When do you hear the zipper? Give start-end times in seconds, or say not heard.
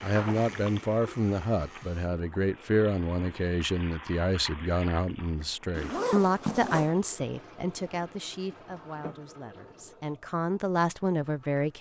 5.7-7.0.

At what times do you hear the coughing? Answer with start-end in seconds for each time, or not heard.
not heard.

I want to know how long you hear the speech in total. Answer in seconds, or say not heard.
12 s.